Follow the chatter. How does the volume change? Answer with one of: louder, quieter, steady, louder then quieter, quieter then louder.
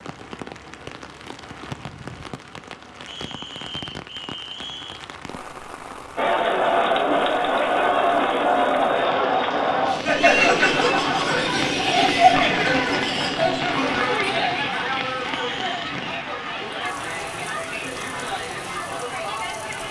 quieter.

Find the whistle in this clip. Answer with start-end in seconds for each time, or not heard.
3.0-5.0, 15.3-15.8.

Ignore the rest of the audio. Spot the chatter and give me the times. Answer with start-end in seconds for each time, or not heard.
6.2-19.8.